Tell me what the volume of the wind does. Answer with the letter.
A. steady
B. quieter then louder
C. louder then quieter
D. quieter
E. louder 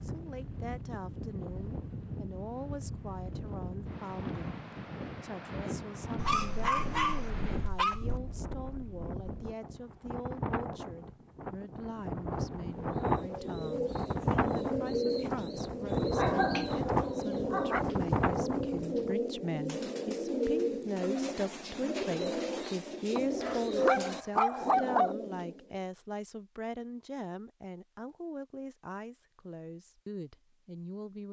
E.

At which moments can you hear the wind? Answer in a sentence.
The wind can be heard from 0.0 to 19.1 s.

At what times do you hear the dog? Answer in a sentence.
The dog can be heard from 6.2 to 8.2 s, from 16.1 to 17.9 s and from 23.1 to 25.1 s.